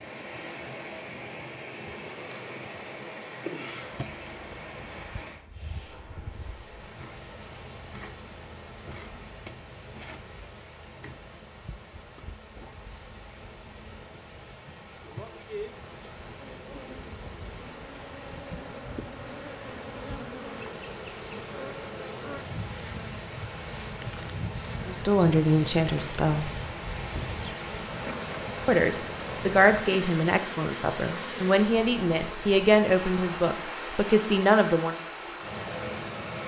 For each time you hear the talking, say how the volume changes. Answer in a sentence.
You can hear the talking briefly from 24.9 to 26.5 s; and from 28.6 to 35.0 s, getting quieter then louder.